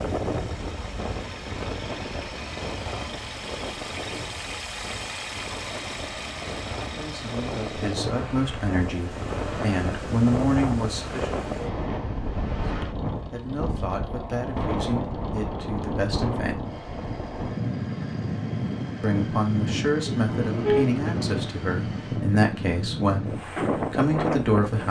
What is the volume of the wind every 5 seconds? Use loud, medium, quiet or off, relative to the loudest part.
medium, medium, loud, loud, loud.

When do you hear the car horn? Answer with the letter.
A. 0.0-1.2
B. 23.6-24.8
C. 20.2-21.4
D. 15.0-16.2
C.